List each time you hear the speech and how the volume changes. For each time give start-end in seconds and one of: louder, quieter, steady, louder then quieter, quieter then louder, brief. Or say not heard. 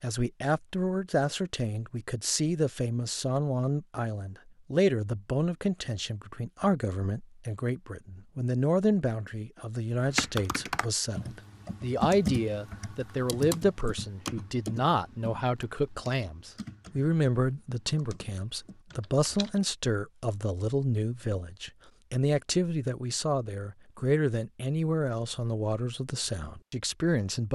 0.0-27.4 steady.